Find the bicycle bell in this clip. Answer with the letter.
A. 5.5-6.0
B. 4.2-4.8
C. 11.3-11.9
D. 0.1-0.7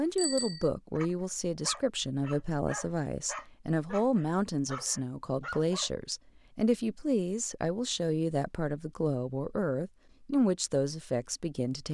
D.